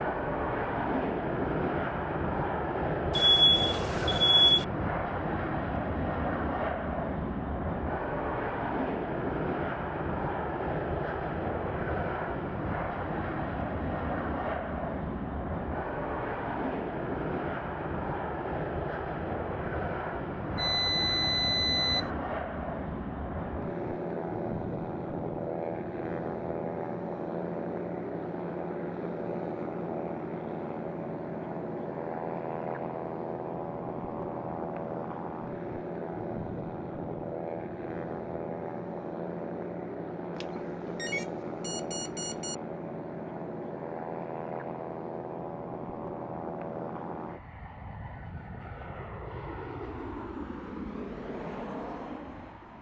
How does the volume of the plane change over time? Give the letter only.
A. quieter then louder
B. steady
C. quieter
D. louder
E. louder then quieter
C.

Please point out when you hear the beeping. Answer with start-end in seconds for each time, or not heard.
3.1-4.7, 20.6-22.1, 40.4-42.5.